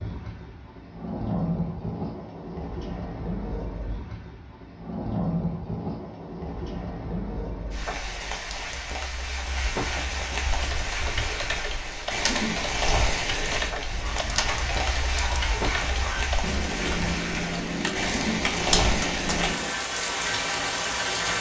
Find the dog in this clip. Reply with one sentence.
You can hear the dog from 13.9 to 16.3 s.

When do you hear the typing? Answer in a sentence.
The typing can be heard from 10.4 to 19.8 s.